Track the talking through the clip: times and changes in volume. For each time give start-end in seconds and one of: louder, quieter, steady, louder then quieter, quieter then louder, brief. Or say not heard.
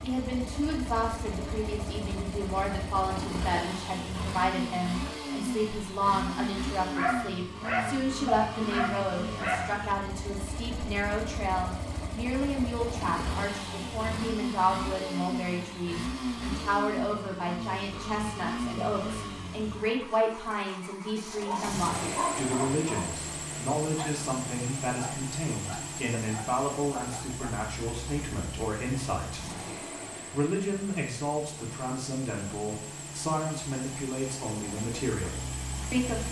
0.0-36.2 steady.